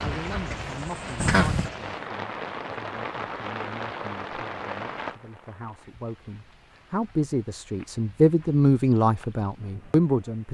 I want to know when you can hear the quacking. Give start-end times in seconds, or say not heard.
0.0-1.7.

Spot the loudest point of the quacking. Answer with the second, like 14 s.
1 s.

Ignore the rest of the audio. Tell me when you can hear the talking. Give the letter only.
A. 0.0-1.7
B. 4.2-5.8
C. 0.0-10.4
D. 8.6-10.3
C.